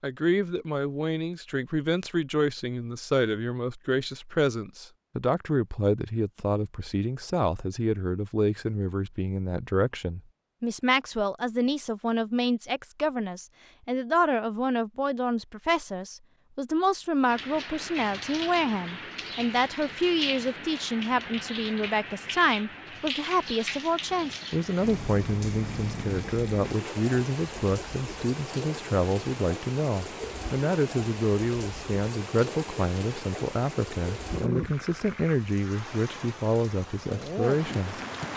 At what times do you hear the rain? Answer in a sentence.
The rain can be heard from 17.2 to 38.3 s.